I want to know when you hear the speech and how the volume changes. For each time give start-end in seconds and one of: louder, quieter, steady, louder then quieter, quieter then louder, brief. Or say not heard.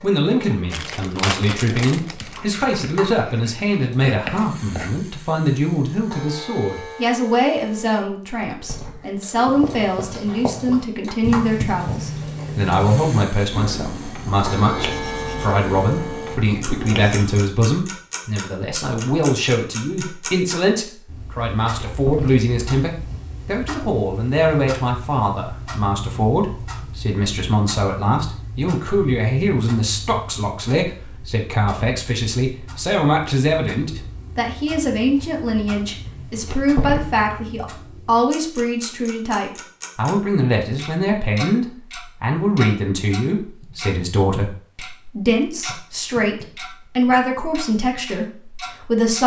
0.0-49.2 steady.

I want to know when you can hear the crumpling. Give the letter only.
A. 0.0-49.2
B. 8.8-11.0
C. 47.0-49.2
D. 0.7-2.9
D.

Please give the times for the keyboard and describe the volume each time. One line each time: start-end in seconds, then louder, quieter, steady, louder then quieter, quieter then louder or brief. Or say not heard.
not heard.